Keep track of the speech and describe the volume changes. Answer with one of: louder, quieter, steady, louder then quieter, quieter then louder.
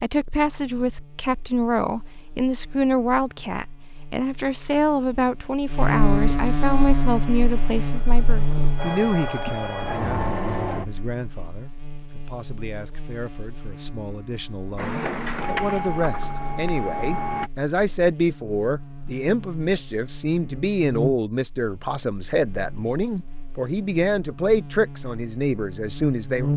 quieter then louder.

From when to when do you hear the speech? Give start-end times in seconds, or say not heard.
0.0-26.5.